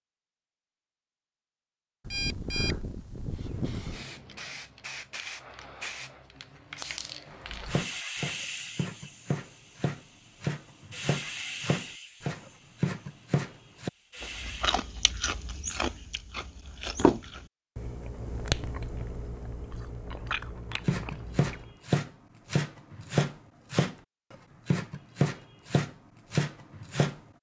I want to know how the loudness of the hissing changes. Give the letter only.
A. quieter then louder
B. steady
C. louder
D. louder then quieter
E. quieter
E.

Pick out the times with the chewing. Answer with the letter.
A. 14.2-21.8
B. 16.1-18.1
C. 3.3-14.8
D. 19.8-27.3
A.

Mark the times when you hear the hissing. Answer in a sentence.
You can hear the hissing from 3.3 to 14.8 s.